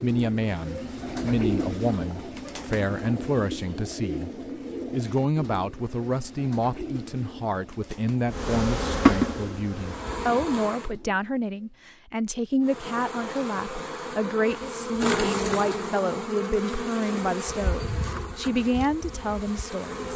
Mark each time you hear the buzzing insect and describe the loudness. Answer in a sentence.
You can hear the buzzing insect briefly from 8.2 to 10.9 s; and from 12.7 to 20.1 s, getting louder then quieter.